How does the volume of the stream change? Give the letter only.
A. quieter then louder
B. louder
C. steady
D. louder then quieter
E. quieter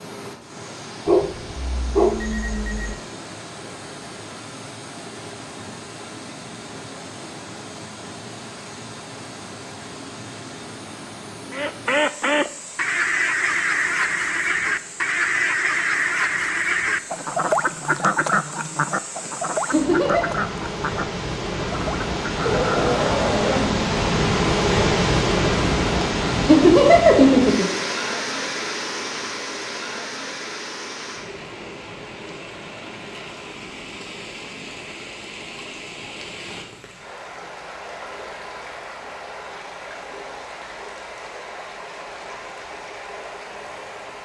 D.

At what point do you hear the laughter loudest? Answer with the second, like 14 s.
27 s.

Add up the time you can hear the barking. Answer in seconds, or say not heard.
3 s.